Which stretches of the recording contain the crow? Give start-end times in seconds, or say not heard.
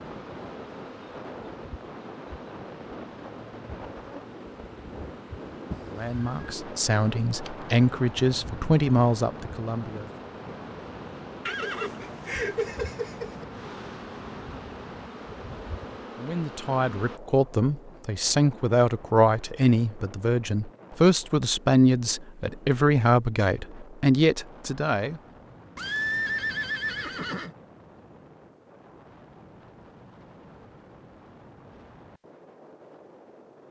not heard.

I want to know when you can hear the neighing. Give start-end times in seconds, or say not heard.
5.7-6.4, 11.4-13.4, 25.8-27.6.